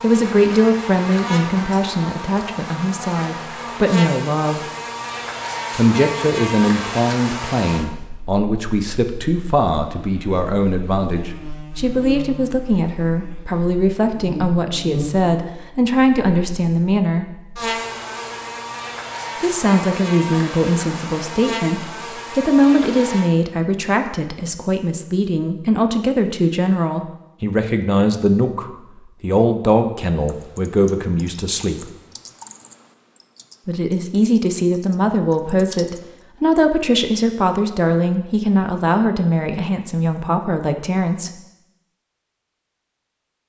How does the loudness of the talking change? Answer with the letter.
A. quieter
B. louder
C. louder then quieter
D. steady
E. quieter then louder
D.